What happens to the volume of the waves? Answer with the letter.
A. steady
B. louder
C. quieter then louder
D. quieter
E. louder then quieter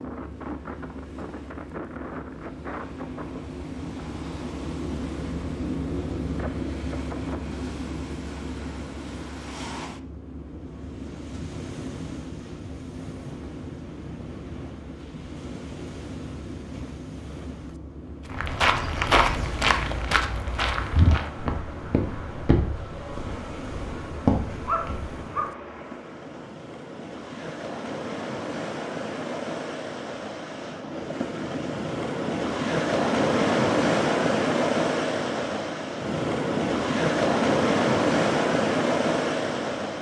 B.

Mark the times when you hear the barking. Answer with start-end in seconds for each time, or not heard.
24.6-25.6.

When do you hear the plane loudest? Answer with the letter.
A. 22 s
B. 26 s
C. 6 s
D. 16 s
C.